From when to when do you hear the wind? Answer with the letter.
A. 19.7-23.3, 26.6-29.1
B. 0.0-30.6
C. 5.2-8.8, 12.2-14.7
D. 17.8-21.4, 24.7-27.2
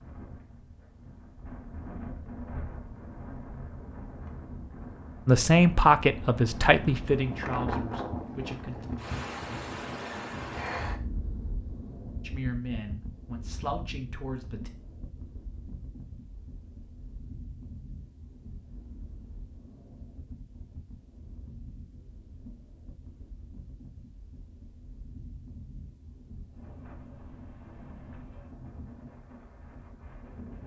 B.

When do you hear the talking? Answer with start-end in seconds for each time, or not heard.
5.2-8.8, 12.2-14.7.